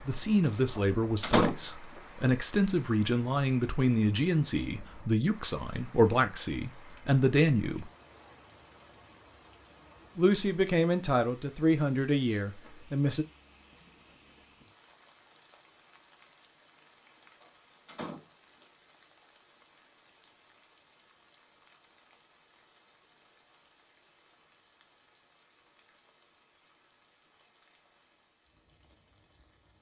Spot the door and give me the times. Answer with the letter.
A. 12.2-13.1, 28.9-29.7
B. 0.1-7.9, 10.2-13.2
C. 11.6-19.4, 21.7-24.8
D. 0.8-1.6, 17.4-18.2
D.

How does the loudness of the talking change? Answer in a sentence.
The loudness of the talking stays about the same.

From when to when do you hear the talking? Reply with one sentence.
You can hear the talking from 0.1 to 7.9 s and from 10.2 to 13.2 s.